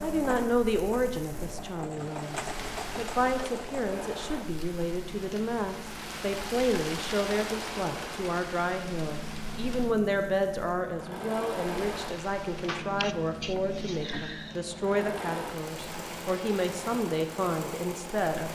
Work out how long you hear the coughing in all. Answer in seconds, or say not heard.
2 s.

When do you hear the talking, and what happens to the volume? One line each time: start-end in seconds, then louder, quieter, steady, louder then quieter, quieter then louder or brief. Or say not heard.
0.0-18.4 steady.